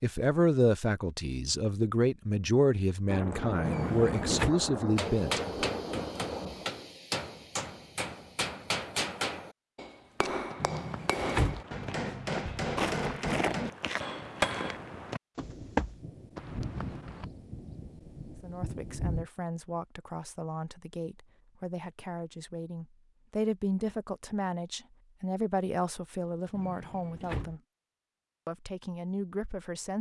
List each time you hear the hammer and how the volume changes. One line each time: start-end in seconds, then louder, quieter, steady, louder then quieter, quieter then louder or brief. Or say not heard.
5.0-14.8 steady.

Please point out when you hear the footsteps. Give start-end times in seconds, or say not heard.
10.2-17.2.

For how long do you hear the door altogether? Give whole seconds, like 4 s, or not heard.
3 s.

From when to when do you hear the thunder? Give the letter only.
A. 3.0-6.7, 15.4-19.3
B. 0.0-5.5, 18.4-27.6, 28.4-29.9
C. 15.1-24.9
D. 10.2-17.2
A.